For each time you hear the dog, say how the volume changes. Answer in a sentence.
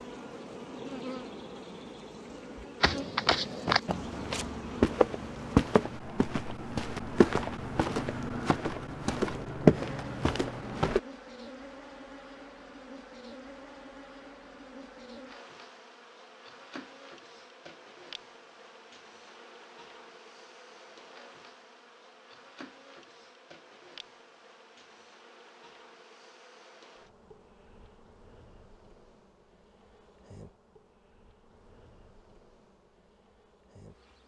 You can't hear the dog here.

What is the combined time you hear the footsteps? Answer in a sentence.
The footsteps can be heard for 8 seconds in total.